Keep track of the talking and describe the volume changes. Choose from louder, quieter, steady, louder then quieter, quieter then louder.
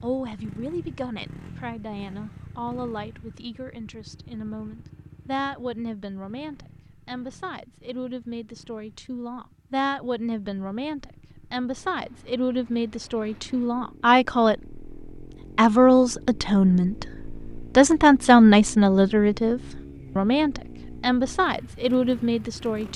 louder.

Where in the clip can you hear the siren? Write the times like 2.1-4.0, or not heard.
not heard.